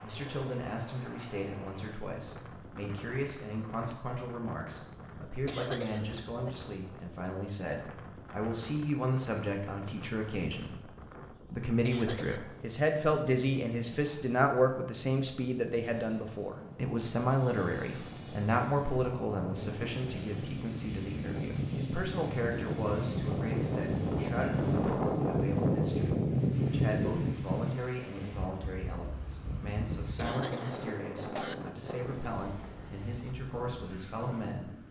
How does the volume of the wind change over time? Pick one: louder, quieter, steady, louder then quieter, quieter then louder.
louder then quieter.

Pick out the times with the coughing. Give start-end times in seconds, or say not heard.
5.5-6.5, 11.8-12.7, 30.1-31.6.